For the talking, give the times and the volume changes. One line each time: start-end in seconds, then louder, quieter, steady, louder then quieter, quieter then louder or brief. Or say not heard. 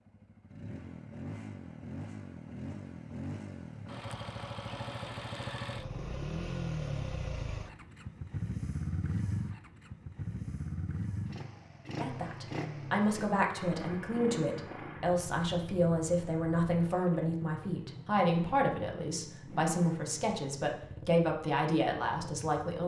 11.9-22.8 steady.